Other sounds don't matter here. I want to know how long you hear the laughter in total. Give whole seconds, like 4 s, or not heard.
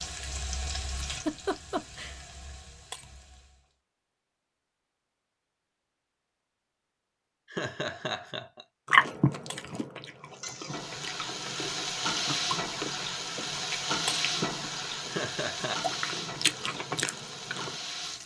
3 s.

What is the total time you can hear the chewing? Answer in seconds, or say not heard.
9 s.